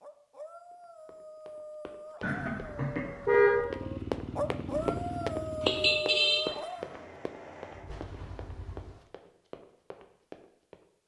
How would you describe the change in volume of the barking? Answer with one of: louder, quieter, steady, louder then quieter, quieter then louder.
louder.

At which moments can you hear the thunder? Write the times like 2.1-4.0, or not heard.
7.8-9.1.